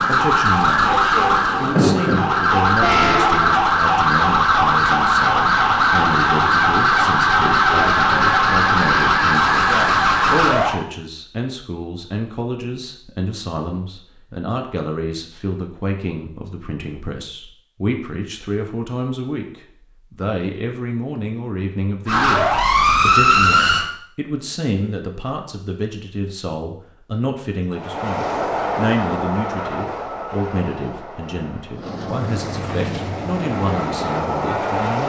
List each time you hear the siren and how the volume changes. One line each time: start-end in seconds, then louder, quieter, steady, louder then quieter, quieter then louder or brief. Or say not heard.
0.0-10.8 steady
22.1-23.9 brief.